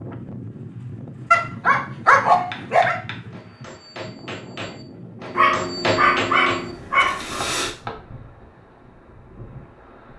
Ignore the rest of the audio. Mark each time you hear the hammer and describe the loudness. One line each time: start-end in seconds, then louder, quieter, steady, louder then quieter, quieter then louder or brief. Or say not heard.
2.5-6.8 louder
7.4-8.0 brief.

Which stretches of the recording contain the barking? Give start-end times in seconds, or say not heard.
1.3-3.0, 5.3-7.7.